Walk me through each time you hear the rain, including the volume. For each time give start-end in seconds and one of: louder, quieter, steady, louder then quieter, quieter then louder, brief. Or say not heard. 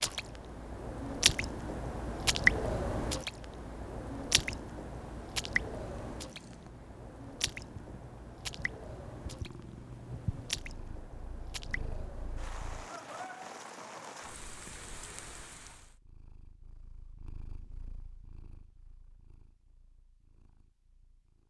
0.0-15.9 quieter.